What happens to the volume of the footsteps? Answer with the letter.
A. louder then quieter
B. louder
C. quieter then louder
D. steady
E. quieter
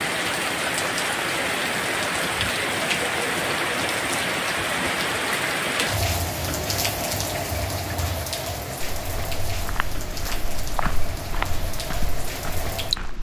A.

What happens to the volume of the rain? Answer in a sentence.
The volume of the rain goes down.